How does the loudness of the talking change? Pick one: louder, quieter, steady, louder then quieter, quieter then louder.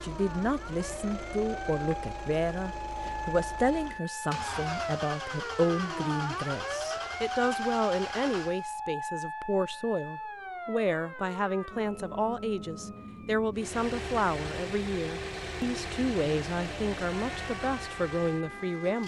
steady.